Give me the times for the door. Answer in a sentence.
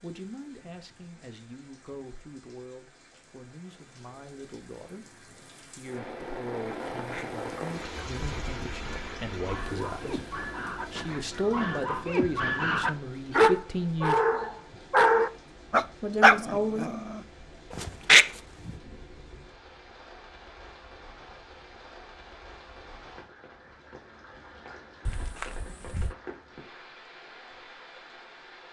You can hear the door from 25.1 to 26.1 s.